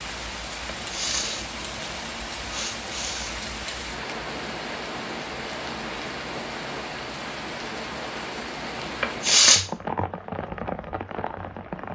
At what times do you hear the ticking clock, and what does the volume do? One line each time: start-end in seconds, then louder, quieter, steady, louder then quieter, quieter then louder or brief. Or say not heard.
not heard.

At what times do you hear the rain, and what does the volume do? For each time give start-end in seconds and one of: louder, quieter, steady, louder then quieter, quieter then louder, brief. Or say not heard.
0.0-11.8 steady.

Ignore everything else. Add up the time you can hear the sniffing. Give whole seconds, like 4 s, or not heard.
3 s.